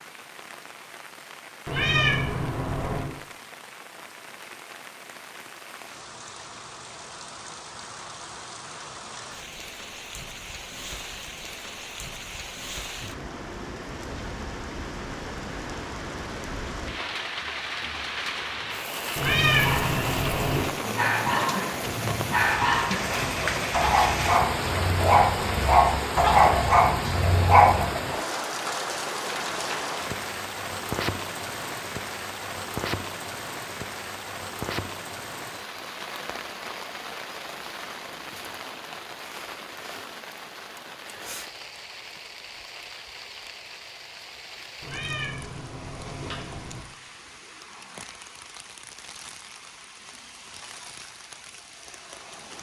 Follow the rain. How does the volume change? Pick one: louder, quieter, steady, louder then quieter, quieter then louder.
louder then quieter.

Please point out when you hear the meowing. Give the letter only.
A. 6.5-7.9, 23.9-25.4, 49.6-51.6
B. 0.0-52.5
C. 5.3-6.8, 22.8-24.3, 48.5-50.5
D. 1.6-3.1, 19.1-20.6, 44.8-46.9
D.